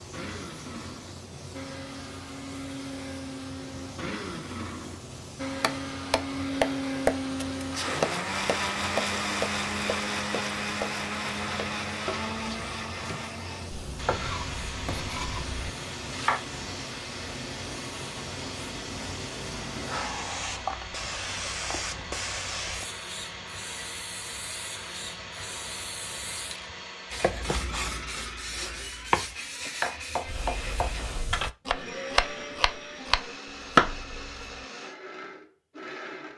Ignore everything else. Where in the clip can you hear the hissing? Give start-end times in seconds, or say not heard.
0.0-31.5.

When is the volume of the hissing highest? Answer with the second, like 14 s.
20 s.